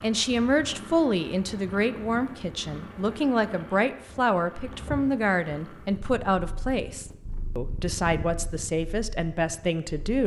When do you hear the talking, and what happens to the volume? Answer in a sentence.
The talking can be heard from 0.0 to 10.2 s, at a steady volume.